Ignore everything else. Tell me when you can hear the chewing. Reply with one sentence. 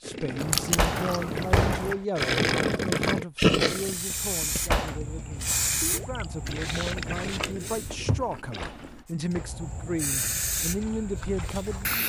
The chewing can be heard from 0.3 to 1.9 s and from 6.5 to 9.1 s.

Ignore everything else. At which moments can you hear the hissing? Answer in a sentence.
You can hear the hissing from 3.6 to 7.9 s and from 9.1 to 12.0 s.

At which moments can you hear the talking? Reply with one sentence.
The talking can be heard from 0.0 to 12.0 s.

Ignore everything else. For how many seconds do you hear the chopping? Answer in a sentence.
You can't hear the chopping here.